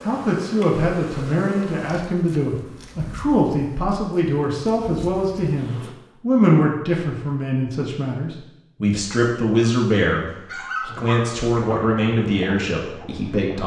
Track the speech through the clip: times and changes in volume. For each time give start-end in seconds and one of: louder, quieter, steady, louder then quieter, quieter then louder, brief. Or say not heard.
0.1-13.6 steady.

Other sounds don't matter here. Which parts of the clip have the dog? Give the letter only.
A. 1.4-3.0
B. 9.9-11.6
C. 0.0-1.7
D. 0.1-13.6
B.